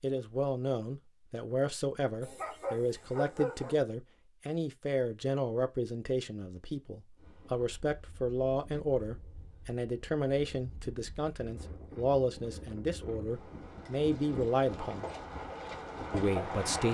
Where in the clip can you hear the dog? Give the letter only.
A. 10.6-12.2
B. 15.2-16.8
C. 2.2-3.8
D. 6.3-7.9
C.